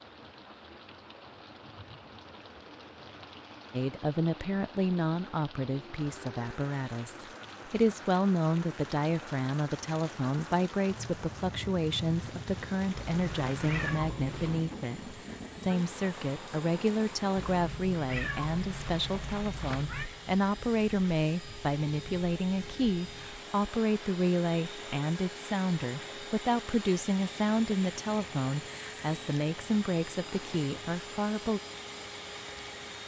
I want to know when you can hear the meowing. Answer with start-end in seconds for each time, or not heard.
13.1-14.7, 17.4-20.1.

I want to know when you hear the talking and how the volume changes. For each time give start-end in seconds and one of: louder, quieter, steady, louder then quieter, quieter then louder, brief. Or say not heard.
3.7-31.6 steady.